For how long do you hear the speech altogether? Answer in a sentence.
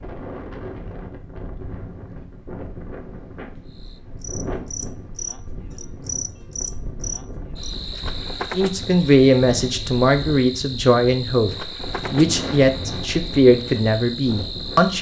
You can hear the speech for 6 seconds altogether.